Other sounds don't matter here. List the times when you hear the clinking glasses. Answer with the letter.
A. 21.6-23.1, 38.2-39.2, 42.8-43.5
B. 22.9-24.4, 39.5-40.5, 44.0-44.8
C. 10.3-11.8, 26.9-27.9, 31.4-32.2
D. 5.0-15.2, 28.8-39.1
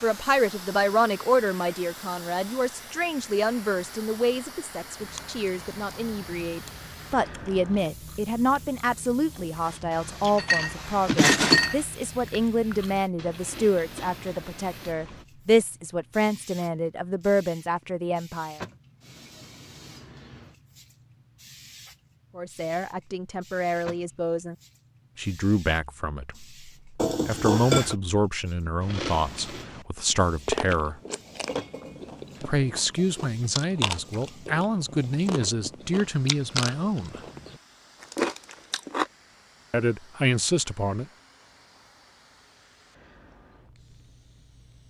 C.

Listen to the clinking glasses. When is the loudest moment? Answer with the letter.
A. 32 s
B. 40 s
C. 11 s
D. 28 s
C.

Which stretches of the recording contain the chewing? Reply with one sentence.
You can hear the chewing from 5.0 to 15.2 s and from 28.8 to 39.1 s.